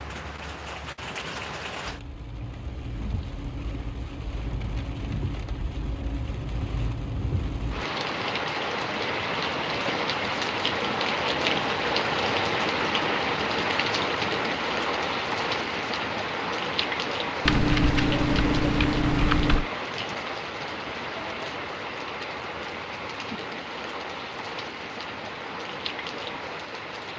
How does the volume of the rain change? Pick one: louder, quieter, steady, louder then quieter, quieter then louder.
louder then quieter.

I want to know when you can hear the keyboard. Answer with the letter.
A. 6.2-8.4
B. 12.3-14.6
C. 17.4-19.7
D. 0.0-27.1
C.